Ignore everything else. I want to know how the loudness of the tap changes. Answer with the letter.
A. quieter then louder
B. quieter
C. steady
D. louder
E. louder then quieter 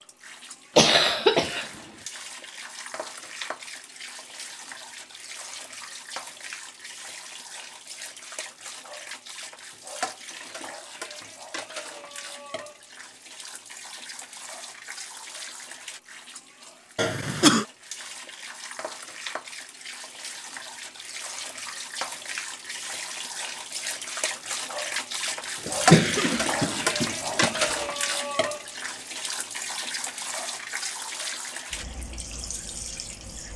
D.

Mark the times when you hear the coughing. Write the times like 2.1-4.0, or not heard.
0.8-1.7, 16.9-17.6, 25.6-27.6.